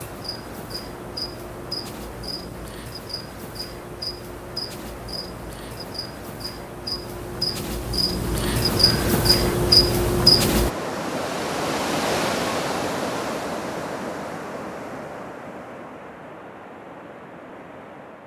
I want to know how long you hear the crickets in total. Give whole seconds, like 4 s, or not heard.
11 s.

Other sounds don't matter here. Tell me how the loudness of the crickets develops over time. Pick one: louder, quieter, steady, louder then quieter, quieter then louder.
louder.